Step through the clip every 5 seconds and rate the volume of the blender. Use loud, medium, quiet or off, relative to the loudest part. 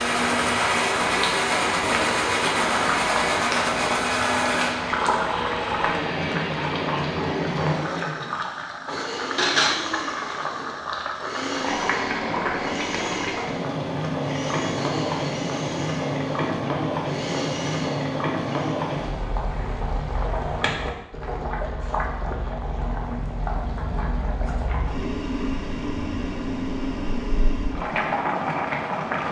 loud, medium, medium, medium, off, off.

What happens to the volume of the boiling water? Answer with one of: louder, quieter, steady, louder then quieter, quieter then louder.
steady.